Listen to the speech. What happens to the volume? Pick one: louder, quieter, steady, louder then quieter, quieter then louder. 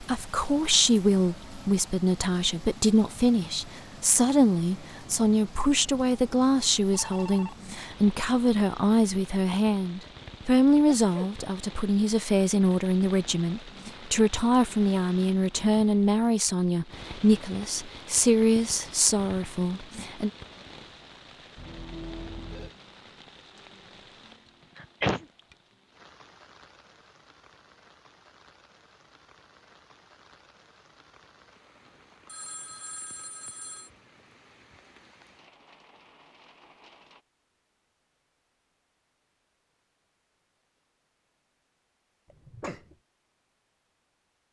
steady.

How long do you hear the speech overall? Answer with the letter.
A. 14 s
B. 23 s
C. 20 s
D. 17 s
C.